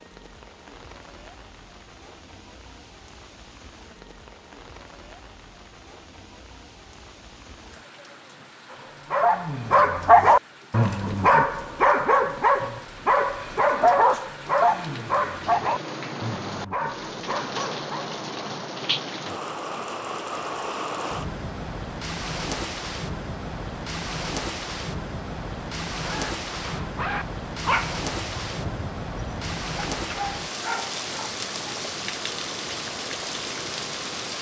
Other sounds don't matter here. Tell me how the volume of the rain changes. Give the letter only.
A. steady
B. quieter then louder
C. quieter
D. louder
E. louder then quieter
D.